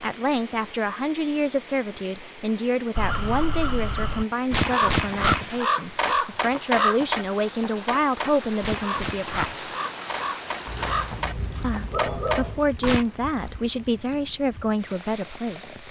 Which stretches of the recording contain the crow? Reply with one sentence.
The crow can be heard from 3.0 to 13.1 s.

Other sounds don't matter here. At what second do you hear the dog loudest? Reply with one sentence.
The volume of the dog peaks at 12 seconds.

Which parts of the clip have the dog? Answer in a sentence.
You can hear the dog from 10.7 to 12.7 s.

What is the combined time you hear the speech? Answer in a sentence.
You can hear the speech for 14 seconds altogether.